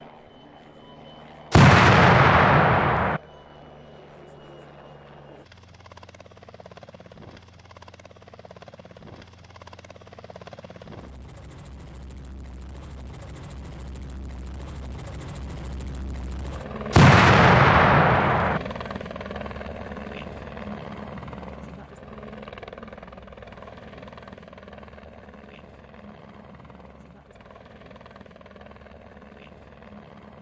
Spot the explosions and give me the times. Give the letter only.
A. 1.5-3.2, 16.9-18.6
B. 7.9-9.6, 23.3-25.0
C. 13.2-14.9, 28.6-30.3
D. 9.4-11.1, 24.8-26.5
A.